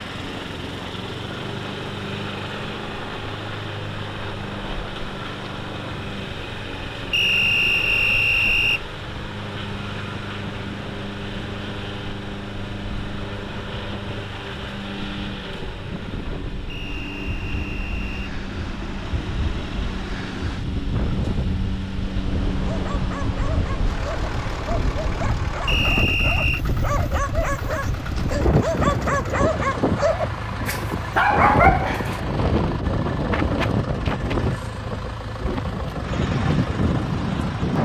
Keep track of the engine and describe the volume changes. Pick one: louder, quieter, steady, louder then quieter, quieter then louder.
steady.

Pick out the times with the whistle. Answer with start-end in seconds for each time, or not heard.
7.1-8.8, 16.6-18.3, 25.6-26.6.